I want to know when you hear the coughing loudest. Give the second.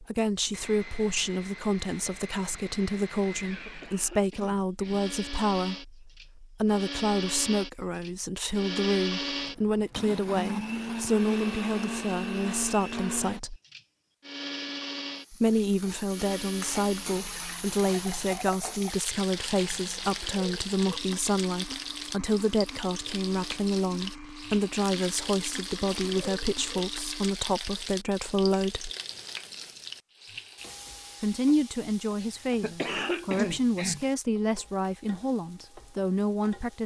33 s.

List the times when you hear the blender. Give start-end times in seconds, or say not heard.
0.5-27.4.